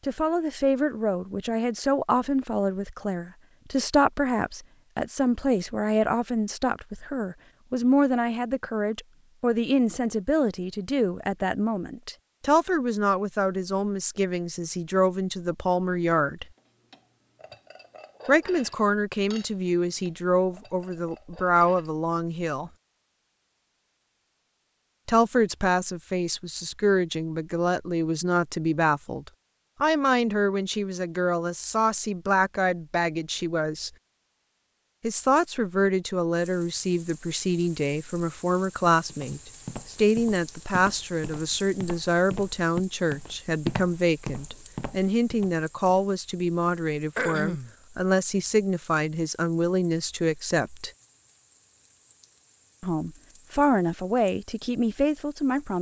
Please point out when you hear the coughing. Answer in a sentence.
You can hear the coughing from 47.1 to 47.7 s.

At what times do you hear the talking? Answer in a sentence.
The talking can be heard from 0.0 to 16.4 s, from 18.2 to 22.7 s, from 25.1 to 33.9 s, from 35.0 to 50.9 s and from 52.8 to 55.7 s.